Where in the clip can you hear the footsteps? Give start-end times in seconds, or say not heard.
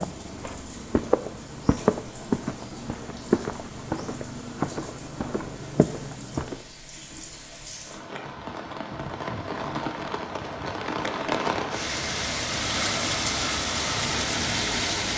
0.0-6.7.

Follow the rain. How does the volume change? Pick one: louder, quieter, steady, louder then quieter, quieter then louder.
louder.